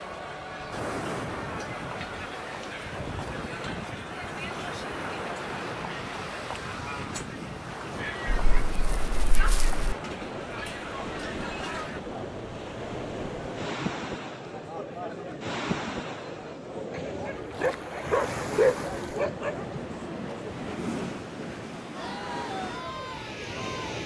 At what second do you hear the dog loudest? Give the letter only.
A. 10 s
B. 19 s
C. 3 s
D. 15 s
B.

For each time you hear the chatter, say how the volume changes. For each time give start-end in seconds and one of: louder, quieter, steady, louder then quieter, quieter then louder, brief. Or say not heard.
0.0-24.0 steady.